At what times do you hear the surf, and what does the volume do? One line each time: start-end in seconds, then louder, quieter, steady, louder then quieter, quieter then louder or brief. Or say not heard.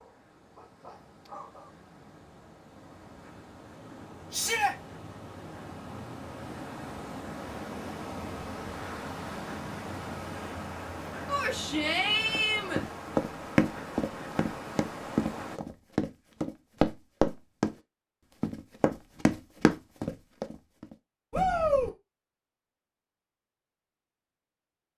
0.0-15.6 louder.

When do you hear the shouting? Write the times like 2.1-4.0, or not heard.
4.3-4.8, 11.2-12.8, 21.3-21.9.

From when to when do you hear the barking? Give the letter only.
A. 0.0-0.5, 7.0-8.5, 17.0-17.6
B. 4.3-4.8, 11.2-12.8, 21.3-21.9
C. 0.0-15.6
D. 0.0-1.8
D.